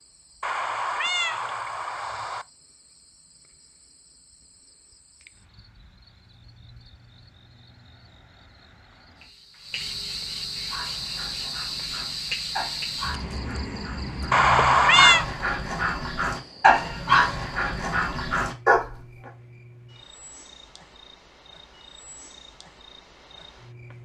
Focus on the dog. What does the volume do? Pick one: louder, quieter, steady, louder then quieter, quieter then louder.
louder.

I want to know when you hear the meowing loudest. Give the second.
15 s.